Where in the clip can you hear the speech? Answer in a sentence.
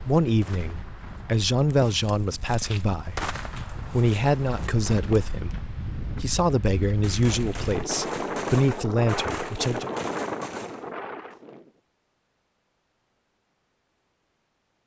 You can hear the speech from 0.0 to 9.9 s.